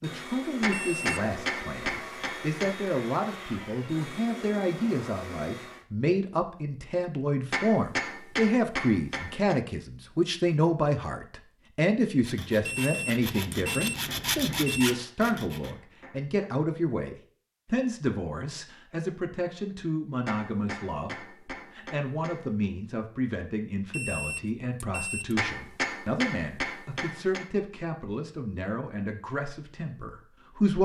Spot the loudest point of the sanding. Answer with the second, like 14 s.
14 s.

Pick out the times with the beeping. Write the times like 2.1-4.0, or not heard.
0.7-1.2, 12.7-14.9, 23.9-25.4.